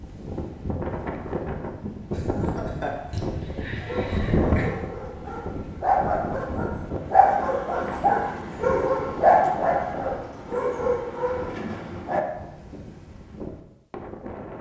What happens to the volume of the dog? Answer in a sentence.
The loudness of the dog goes up, then down.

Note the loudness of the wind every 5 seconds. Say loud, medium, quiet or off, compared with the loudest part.
loud, medium, medium.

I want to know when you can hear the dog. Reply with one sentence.
The dog can be heard from 3.8 to 12.2 s.